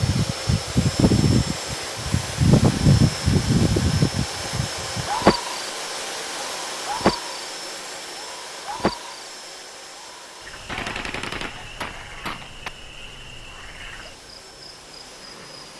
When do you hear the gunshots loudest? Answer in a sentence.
The loudest moment of the gunshots is at 11 seconds.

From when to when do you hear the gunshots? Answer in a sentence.
You can hear the gunshots from 10.7 to 12.7 s.